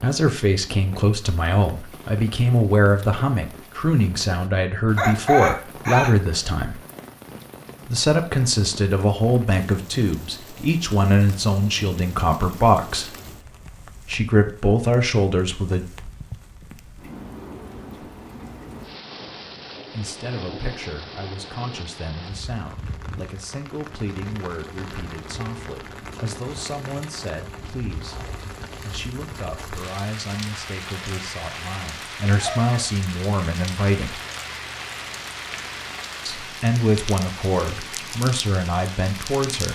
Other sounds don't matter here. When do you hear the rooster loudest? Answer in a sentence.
The volume of the rooster peaks at 5 seconds.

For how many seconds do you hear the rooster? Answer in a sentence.
The rooster can be heard for 2 seconds in total.